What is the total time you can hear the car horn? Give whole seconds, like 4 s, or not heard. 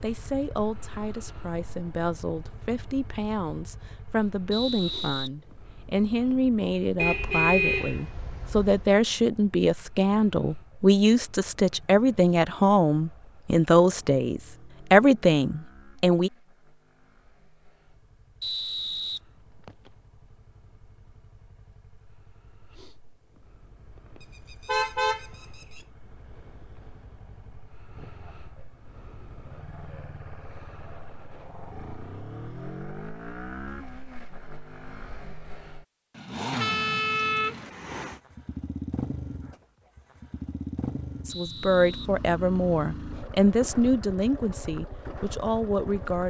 5 s.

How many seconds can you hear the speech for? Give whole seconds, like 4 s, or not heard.
21 s.